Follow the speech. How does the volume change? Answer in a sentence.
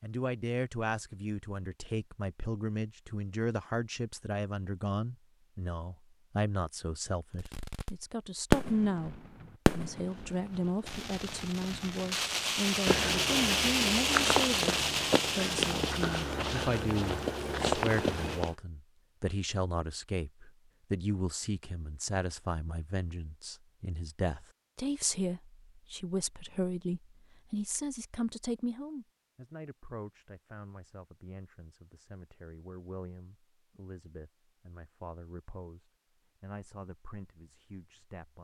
The volume of the speech goes down.